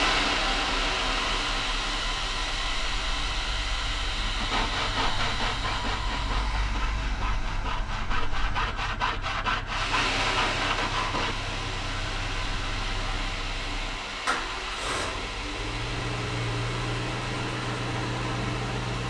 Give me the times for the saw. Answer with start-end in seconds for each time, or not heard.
4.3-11.3.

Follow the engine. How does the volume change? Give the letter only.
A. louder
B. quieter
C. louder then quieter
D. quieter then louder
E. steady
A.